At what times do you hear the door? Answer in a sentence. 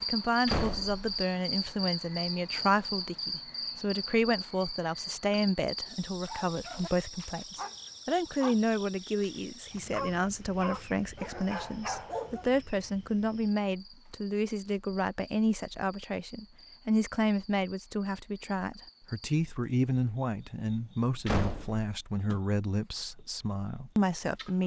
The door can be heard from 0.5 to 1.1 s and from 21.2 to 21.9 s.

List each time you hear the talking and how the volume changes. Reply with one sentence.
The talking can be heard from 0.0 to 24.6 s, at a steady volume.